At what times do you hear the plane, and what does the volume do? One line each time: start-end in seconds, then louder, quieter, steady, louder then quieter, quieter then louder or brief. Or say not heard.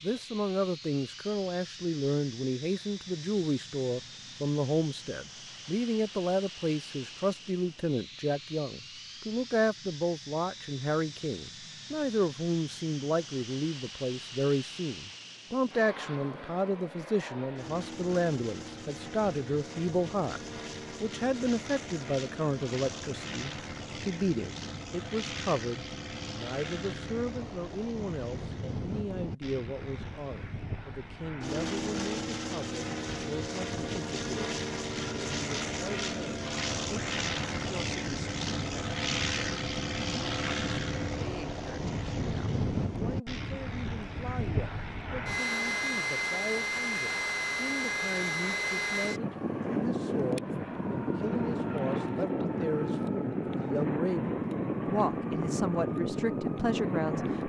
0.0-57.4 louder.